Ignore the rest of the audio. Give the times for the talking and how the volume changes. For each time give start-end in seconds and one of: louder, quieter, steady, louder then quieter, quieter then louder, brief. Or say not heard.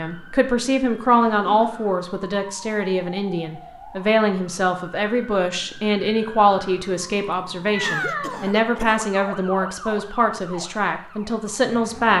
0.0-12.1 steady.